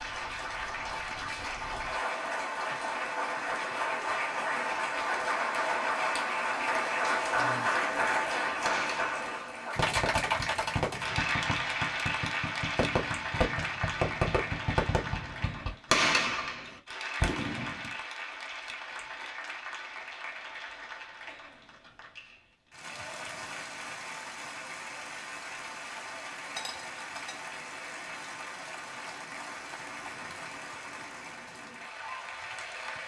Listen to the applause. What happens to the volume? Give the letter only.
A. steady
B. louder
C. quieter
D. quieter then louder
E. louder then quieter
C.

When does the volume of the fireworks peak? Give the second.
16 s.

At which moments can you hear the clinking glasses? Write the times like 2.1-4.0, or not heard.
26.6-27.4.